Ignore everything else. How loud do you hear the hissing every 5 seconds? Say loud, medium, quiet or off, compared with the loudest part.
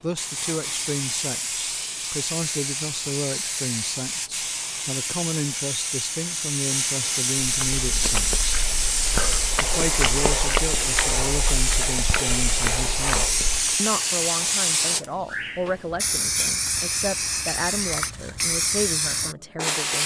medium, loud, loud, loud.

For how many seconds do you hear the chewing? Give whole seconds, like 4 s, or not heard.
6 s.